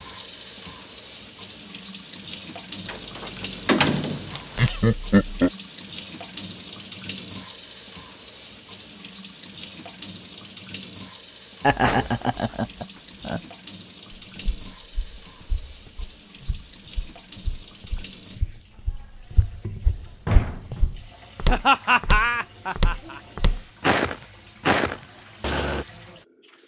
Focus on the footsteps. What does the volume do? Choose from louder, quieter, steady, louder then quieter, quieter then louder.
louder.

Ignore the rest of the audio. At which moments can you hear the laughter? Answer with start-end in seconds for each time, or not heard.
4.5-5.5, 11.6-13.4, 21.4-23.2.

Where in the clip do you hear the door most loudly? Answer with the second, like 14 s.
4 s.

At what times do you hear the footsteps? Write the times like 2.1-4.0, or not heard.
14.3-25.9.